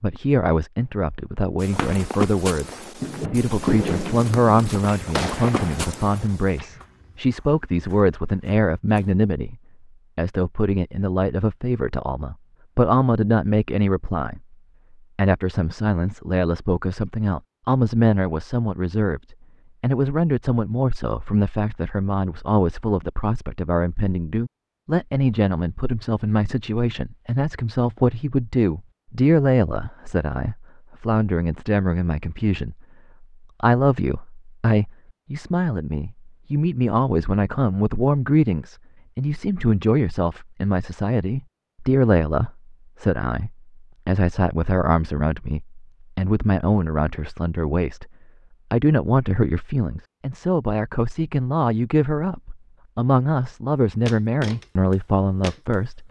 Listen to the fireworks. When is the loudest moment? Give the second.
4 s.